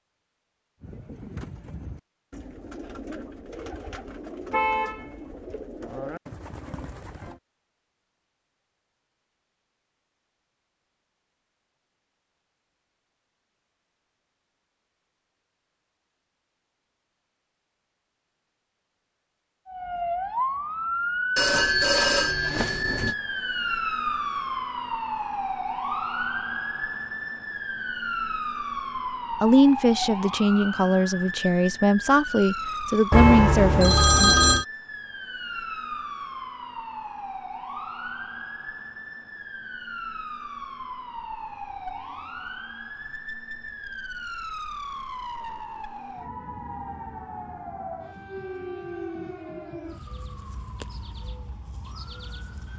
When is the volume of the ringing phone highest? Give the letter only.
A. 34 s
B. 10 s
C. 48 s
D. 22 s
A.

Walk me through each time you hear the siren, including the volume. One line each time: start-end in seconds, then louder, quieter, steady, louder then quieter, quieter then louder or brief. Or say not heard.
19.6-52.7 quieter.